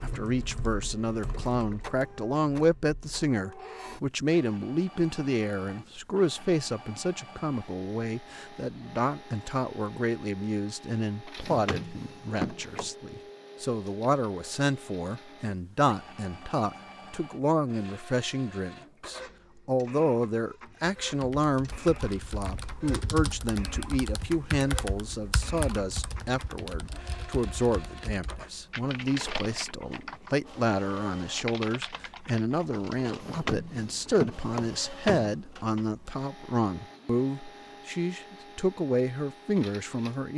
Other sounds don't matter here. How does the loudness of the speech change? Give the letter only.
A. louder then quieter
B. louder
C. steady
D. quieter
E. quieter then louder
C.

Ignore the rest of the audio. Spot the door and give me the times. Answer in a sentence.
The door can be heard from 11.4 to 12.9 s and from 33.2 to 35.4 s.